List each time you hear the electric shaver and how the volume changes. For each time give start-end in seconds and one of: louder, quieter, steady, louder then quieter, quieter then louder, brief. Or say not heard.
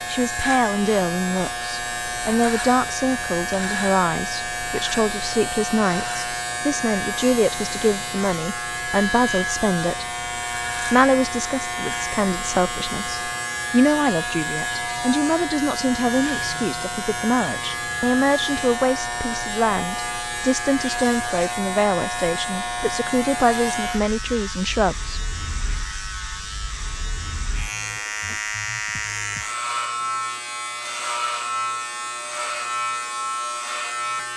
0.0-34.3 steady.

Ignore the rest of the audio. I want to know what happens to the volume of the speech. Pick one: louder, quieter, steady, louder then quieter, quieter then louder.
steady.